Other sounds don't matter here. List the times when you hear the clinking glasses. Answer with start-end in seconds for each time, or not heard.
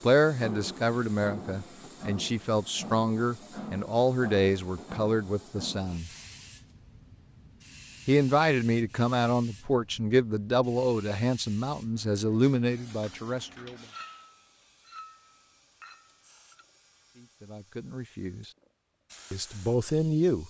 13.9-16.6.